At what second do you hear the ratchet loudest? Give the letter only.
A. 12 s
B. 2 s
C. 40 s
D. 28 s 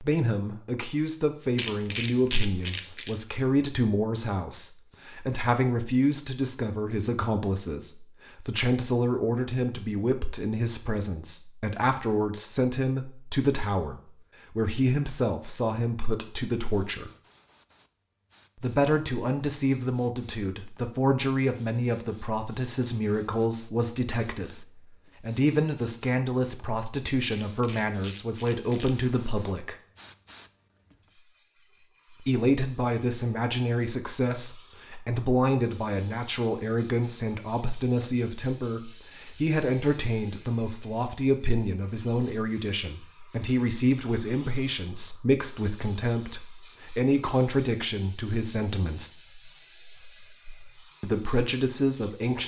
B.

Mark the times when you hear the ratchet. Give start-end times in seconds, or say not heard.
1.6-3.1, 27.3-29.1.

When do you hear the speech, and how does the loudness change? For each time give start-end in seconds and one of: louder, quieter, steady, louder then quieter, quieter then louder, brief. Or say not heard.
0.0-17.1 steady
18.6-29.8 steady
32.2-49.1 steady
51.0-52.4 brief.